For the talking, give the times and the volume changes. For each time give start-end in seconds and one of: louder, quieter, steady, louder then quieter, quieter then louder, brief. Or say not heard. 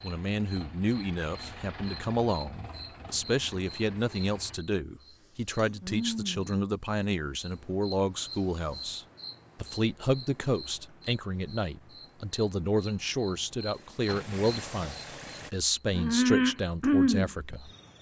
0.0-17.7 steady.